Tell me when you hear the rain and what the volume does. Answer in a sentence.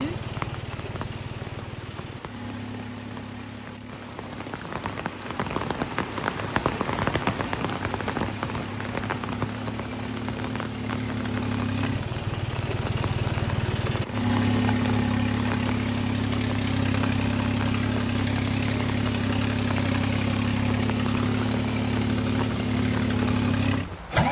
You can hear the rain from 0.0 to 24.2 s, getting louder then quieter.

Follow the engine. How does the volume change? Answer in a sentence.
The loudness of the engine goes up.